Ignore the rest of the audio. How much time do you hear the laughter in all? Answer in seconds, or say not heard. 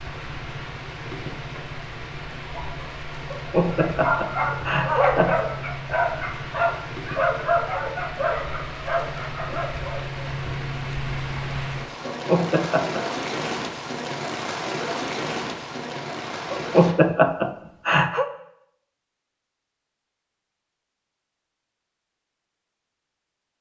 5 s.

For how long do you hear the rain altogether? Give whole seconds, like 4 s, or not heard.
17 s.